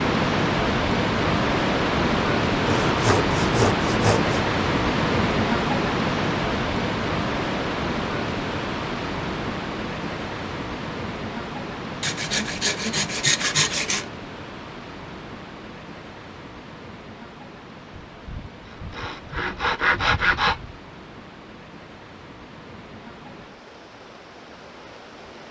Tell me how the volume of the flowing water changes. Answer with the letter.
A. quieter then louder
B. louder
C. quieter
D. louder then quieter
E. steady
C.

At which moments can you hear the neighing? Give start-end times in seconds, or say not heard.
not heard.